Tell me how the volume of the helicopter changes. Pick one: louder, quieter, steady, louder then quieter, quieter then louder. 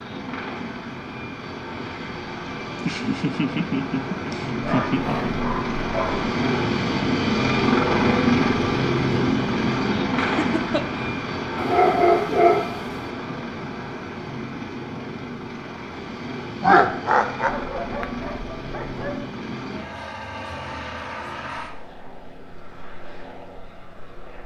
louder then quieter.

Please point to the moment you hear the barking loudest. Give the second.
12 s.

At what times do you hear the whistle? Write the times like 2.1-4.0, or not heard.
not heard.